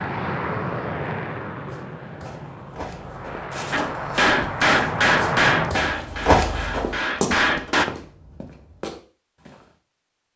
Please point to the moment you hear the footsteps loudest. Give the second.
6 s.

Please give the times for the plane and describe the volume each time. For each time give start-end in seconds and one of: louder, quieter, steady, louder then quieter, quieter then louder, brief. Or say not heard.
0.0-5.8 quieter then louder.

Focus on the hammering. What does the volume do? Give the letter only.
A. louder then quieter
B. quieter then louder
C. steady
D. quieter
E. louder
B.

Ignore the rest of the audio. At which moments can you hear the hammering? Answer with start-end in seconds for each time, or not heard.
3.7-7.8.